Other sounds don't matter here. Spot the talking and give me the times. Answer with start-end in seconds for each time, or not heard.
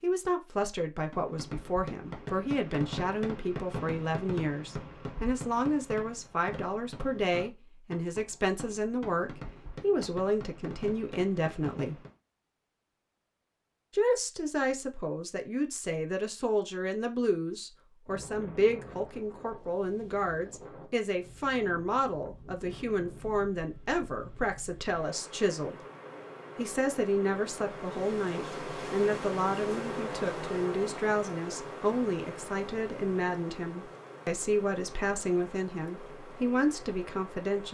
0.0-11.9, 13.9-25.8, 26.6-37.6.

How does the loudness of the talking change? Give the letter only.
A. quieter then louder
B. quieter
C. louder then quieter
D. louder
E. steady
E.